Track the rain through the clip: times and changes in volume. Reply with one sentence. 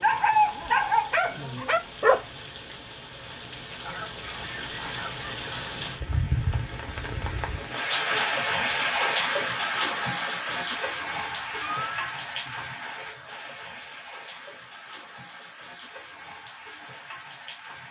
You can hear the rain from 0.0 to 17.8 s, getting louder then quieter.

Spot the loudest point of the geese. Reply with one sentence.
The volume of the geese peaks at 12 seconds.